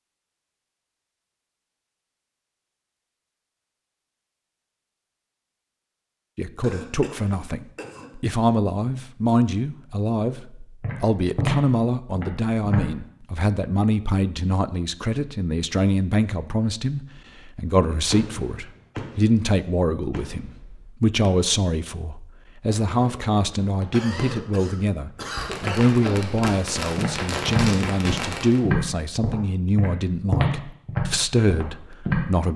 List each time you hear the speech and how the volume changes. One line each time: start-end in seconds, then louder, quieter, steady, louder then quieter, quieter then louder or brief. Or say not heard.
6.3-32.5 steady.